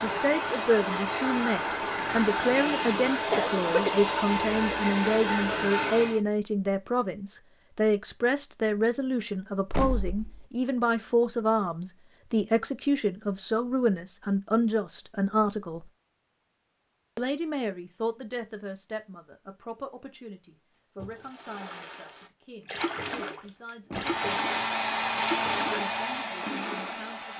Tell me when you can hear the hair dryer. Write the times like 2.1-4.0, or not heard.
0.0-6.2, 24.0-27.3.